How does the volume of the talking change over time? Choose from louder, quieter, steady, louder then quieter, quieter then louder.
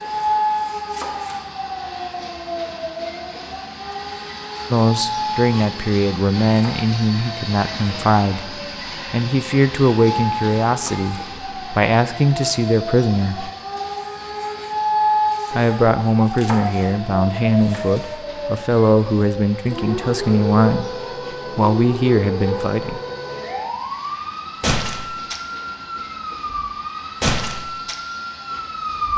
steady.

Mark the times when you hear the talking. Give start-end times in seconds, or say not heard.
4.7-13.5, 15.5-23.0.